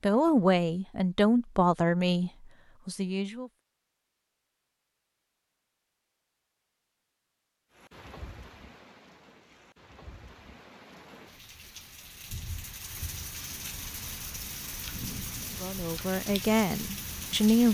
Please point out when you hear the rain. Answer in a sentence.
You can hear the rain from 7.7 to 17.6 s.